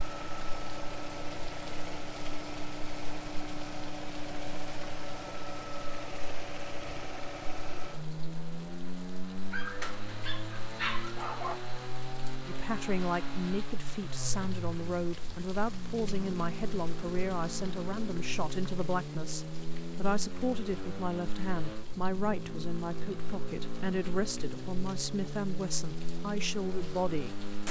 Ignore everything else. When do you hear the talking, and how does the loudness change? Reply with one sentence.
You can hear the talking from 12.4 to 27.4 s, at a steady volume.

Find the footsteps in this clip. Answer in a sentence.
You can't hear the footsteps here.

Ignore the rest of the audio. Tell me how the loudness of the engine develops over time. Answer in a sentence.
The loudness of the engine stays about the same.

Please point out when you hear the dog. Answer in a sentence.
You can hear the dog from 9.5 to 11.6 s.